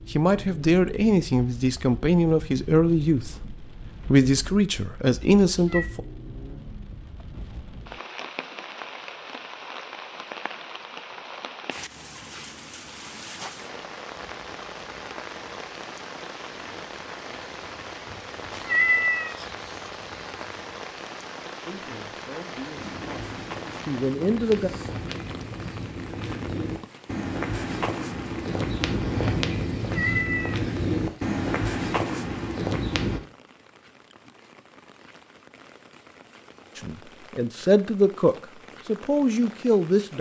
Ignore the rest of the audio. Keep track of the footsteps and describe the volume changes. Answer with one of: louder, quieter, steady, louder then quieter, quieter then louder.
louder.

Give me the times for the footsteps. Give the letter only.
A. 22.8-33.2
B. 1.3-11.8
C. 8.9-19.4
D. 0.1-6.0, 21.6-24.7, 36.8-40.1
A.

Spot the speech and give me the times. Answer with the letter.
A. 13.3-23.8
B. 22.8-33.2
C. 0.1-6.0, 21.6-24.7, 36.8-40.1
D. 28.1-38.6
C.